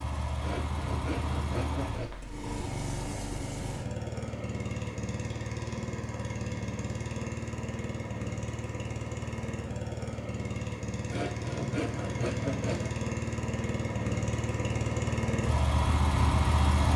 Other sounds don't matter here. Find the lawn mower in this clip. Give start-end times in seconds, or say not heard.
0.0-16.9.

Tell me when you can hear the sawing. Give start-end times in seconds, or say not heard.
0.4-2.2, 11.1-12.9.